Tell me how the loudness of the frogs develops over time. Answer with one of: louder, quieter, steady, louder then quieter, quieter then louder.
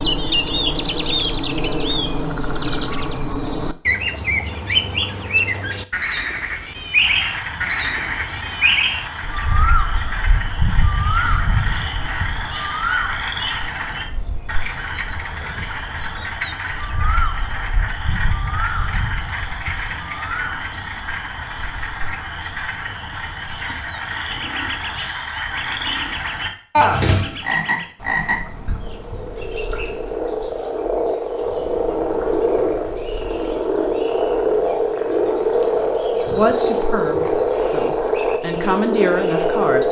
louder.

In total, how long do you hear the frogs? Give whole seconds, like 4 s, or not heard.
33 s.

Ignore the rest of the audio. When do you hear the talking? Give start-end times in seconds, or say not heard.
36.3-39.8.